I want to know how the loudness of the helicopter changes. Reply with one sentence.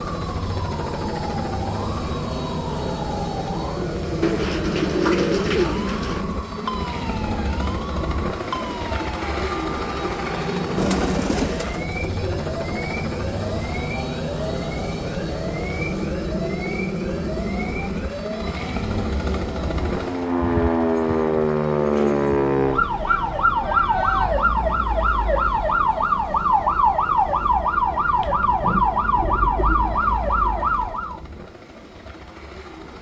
The loudness of the helicopter goes down.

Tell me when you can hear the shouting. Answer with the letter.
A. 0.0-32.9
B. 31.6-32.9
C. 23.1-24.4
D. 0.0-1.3
C.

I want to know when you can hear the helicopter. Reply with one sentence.
You can hear the helicopter from 0.0 to 32.9 s.